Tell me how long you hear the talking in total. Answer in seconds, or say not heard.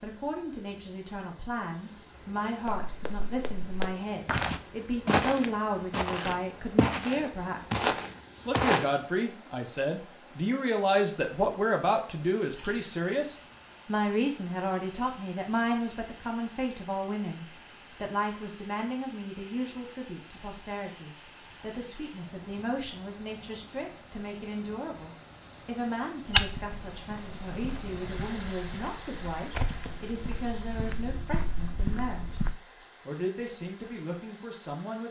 34 s.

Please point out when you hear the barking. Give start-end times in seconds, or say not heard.
not heard.